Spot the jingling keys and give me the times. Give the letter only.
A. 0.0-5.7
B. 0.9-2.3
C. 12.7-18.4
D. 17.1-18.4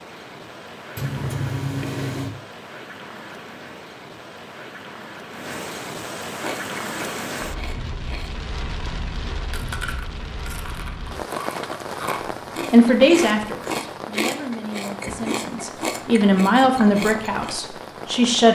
B.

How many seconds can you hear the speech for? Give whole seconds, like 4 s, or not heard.
6 s.